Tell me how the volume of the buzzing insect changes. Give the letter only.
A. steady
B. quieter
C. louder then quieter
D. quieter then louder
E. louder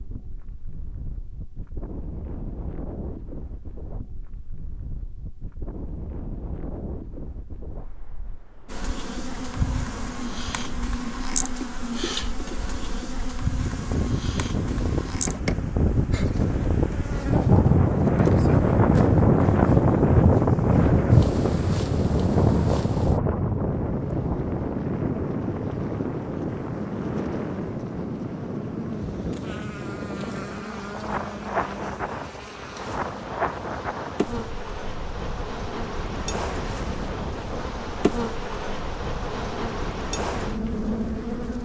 D.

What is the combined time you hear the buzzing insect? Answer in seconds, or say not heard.
33 s.